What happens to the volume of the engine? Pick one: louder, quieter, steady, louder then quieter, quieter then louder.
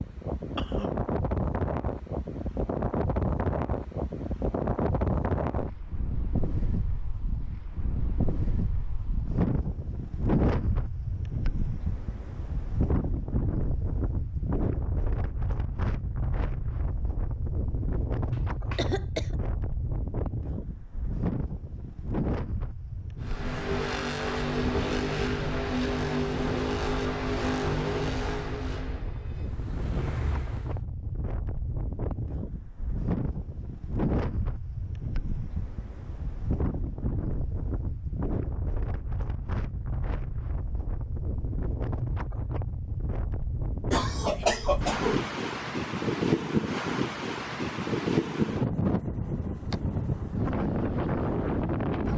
quieter.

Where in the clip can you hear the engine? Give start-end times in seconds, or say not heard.
23.2-30.8.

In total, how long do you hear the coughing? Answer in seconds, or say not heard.
3 s.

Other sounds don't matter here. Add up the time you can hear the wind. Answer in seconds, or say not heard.
52 s.